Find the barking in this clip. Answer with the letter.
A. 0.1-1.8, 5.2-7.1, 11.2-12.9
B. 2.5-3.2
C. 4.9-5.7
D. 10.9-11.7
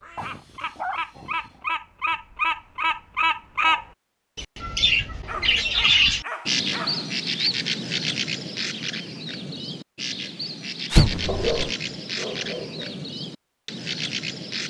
A.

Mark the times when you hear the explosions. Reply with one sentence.
You can hear the explosions from 10.9 to 11.7 s.